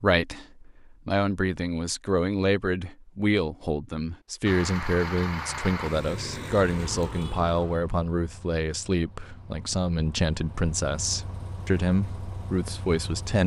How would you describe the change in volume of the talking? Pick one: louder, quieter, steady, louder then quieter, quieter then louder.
steady.